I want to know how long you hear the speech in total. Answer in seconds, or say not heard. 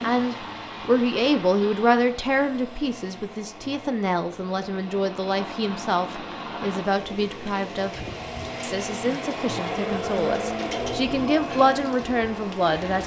13 s.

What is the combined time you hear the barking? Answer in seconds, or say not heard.
not heard.